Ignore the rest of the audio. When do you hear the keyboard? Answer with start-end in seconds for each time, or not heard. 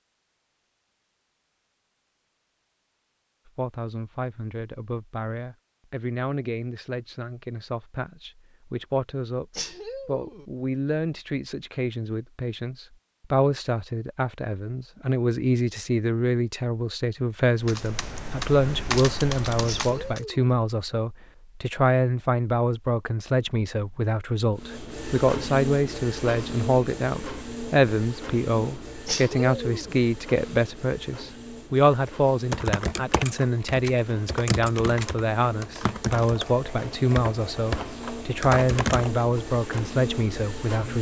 17.6-20.2, 32.0-39.9.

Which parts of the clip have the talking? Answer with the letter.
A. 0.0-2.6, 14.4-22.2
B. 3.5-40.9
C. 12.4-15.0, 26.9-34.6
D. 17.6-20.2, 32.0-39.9
B.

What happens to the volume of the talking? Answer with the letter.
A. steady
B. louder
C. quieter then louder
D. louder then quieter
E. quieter
B.